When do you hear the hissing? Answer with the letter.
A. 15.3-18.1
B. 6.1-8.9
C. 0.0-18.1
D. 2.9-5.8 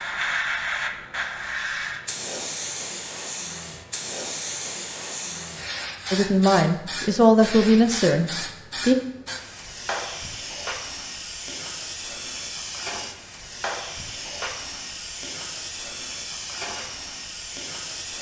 C.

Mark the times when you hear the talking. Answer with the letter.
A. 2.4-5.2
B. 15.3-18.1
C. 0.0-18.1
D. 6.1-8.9
D.